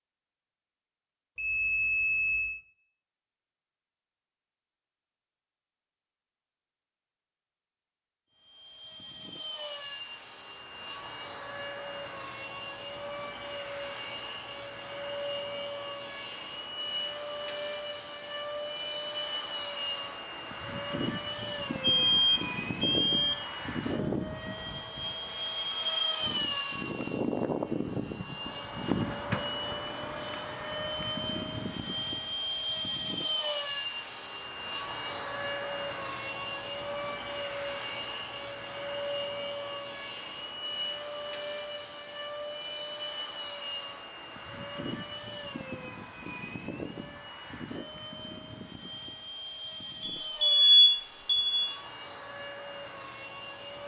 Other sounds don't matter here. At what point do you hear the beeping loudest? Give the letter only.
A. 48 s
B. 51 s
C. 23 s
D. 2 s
B.